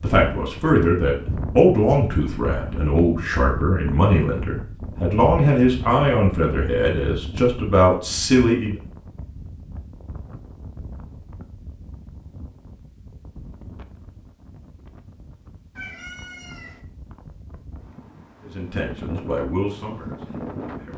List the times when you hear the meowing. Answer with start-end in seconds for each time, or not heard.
15.8-16.8.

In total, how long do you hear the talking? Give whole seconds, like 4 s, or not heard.
11 s.